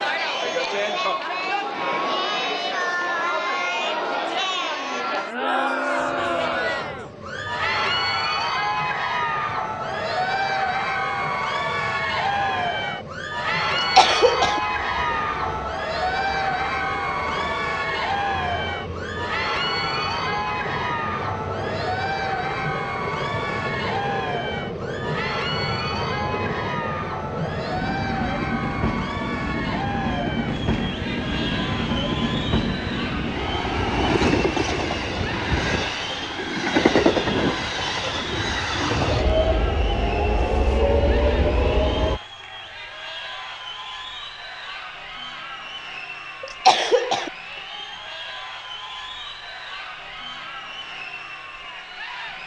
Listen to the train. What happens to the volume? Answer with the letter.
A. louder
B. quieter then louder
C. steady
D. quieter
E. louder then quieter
A.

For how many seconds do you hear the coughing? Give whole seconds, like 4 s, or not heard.
2 s.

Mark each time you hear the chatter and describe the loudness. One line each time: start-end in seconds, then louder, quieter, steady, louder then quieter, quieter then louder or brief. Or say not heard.
0.0-52.4 quieter.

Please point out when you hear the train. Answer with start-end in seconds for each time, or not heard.
6.0-42.2.